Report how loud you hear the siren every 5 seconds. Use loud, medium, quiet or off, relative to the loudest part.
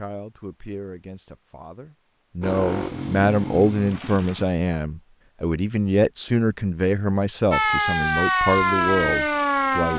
off, loud.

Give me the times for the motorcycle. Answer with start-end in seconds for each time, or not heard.
2.4-4.5.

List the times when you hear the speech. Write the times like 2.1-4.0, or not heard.
0.0-9.9.